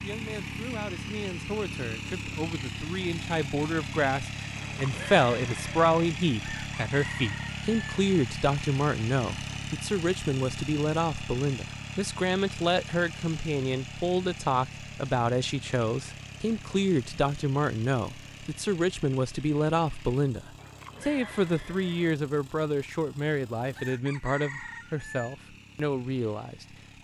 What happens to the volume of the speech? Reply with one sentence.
The volume of the speech stays about the same.